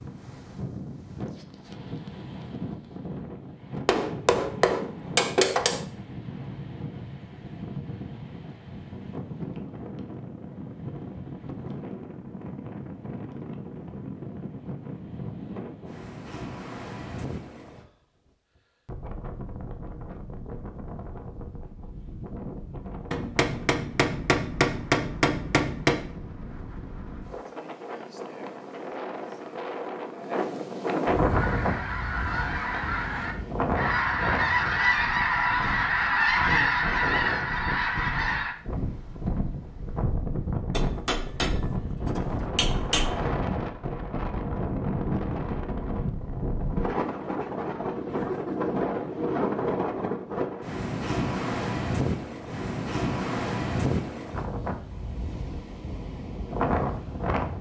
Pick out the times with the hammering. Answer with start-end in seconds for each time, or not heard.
3.9-5.8, 23.1-26.0, 40.8-43.1.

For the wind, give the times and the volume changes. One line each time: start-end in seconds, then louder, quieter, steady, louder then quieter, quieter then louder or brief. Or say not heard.
0.0-57.5 louder.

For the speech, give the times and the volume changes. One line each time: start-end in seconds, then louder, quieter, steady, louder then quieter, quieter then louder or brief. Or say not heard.
not heard.